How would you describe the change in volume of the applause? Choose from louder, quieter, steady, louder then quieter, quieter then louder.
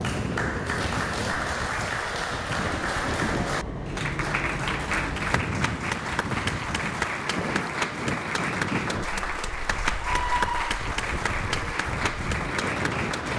steady.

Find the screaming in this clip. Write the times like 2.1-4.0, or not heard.
10.0-10.8.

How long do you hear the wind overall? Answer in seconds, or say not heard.
13 s.